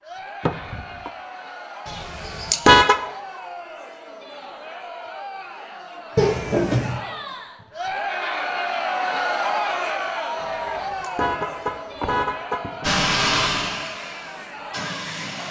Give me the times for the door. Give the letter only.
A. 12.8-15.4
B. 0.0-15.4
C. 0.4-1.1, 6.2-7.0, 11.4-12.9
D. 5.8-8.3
C.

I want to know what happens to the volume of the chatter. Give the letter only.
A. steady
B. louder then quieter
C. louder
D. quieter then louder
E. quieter
B.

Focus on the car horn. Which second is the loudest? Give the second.
3 s.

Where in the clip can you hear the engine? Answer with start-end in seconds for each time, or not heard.
12.8-15.4.